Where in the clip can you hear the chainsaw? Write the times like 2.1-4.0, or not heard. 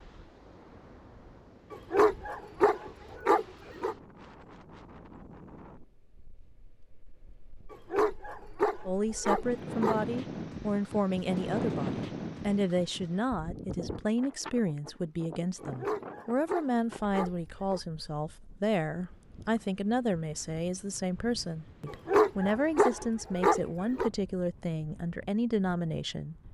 not heard.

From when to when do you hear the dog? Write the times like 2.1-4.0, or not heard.
1.7-4.0, 7.7-10.0, 15.6-17.8, 21.9-24.1.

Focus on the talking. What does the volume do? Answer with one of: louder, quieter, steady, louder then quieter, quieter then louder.
steady.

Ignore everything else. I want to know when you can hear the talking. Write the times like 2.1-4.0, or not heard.
8.8-26.4.